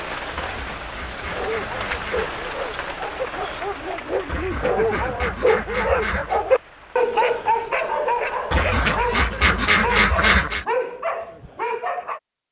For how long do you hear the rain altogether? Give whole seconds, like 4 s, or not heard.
9 s.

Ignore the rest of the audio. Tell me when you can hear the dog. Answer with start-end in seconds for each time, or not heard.
1.3-12.2.